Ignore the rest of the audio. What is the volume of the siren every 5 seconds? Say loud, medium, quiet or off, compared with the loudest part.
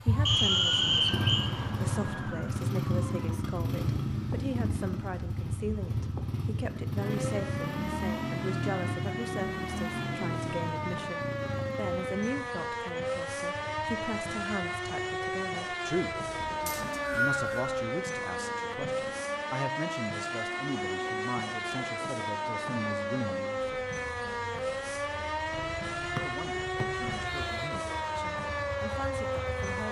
medium, medium, loud, loud, loud, loud.